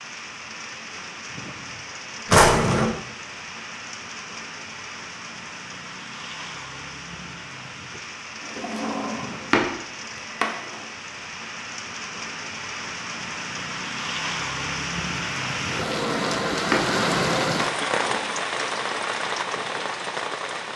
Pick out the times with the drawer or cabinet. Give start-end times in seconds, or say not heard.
2.2-2.9, 8.6-9.7, 10.4-10.8, 15.8-16.9, 17.6-18.3.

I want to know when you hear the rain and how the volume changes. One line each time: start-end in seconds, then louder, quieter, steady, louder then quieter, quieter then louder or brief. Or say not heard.
0.0-20.7 louder.